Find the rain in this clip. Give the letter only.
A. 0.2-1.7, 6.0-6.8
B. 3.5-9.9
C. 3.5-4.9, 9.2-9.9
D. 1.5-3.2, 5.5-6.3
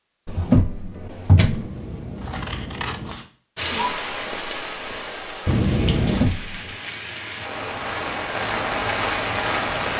B.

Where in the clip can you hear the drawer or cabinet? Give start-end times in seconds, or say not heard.
0.2-1.7, 6.0-6.8.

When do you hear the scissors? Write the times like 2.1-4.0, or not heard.
1.5-3.2, 5.5-6.3.